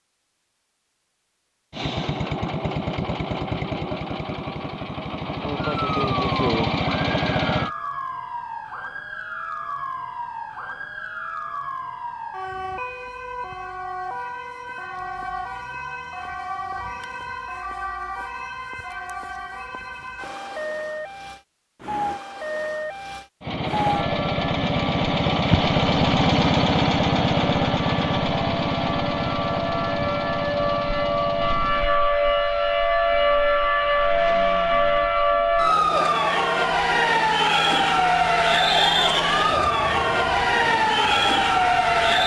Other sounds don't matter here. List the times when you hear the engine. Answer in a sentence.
The engine can be heard from 1.7 to 7.7 s and from 23.4 to 42.2 s.